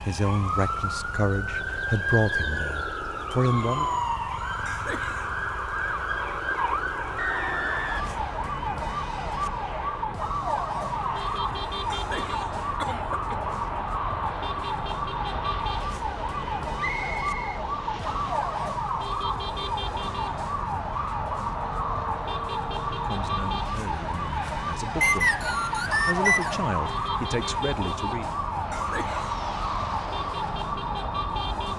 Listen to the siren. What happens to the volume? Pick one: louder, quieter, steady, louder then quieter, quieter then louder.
steady.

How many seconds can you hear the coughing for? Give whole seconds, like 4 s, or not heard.
3 s.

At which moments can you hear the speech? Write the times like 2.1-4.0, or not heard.
0.0-3.9, 22.9-25.4, 26.1-28.4.